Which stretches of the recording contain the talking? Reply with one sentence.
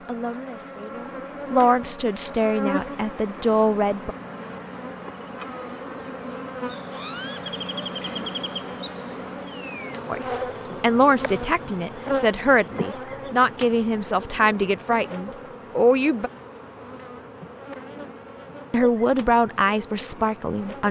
You can hear the talking from 0.1 to 4.2 s, from 10.1 to 16.3 s and from 18.7 to 20.8 s.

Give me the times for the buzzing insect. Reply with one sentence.
The buzzing insect can be heard from 0.0 to 20.8 s.